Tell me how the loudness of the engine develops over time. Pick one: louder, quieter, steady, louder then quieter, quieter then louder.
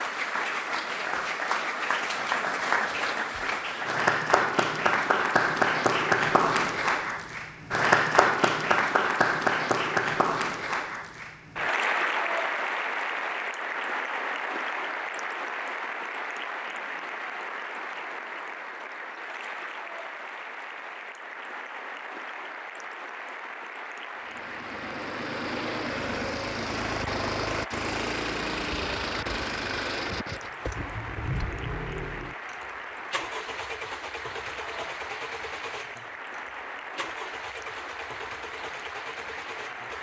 quieter.